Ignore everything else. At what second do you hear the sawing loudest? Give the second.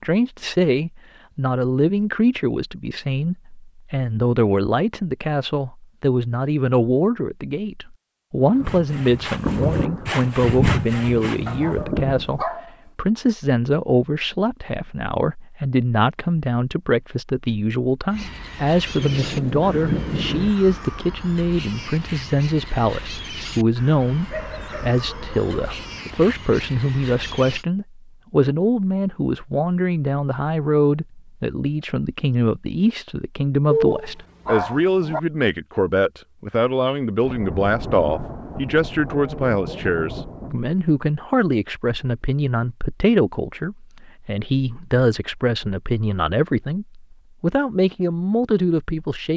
11 s.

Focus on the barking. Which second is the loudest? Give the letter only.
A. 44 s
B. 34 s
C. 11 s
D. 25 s
B.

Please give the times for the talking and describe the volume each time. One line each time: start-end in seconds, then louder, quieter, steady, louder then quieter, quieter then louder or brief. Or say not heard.
0.0-49.3 steady.